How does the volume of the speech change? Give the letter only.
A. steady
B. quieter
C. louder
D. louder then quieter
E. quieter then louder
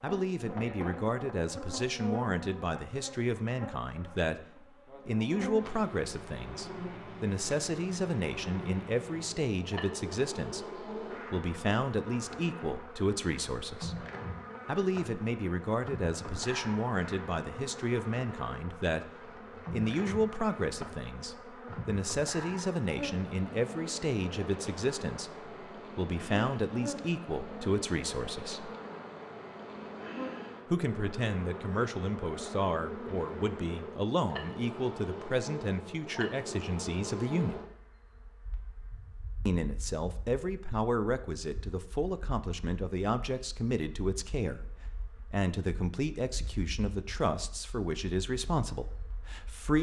A.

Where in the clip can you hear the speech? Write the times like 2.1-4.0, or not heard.
0.0-14.1, 14.7-28.7, 30.6-37.6, 39.5-49.7.